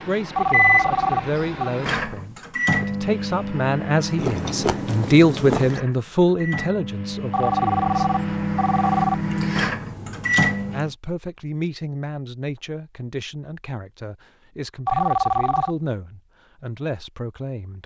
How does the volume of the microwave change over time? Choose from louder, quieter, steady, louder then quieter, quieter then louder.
quieter then louder.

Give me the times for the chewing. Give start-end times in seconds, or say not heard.
4.2-5.8, 9.1-10.9.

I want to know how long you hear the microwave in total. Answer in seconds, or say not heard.
11 s.